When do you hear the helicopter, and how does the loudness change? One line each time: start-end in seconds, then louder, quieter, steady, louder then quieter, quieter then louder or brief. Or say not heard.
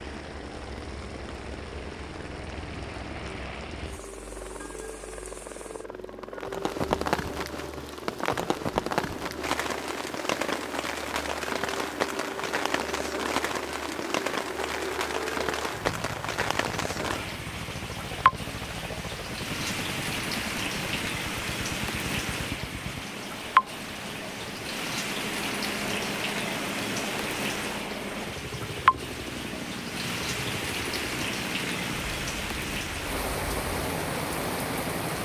0.0-35.2 steady.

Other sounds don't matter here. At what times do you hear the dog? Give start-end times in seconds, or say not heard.
not heard.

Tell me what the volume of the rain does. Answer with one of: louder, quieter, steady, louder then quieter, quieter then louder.
louder.